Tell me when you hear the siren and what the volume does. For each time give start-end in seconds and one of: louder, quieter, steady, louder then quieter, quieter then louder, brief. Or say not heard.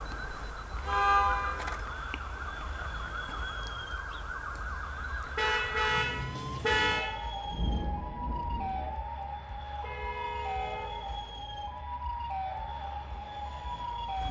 0.0-14.2 steady.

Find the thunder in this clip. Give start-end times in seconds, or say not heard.
7.5-8.9.